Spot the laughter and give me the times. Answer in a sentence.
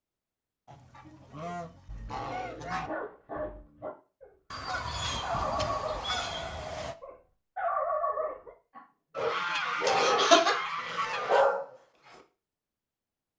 You can hear the laughter from 9.8 to 10.6 s.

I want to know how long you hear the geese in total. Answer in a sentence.
The geese can be heard for 7 seconds in total.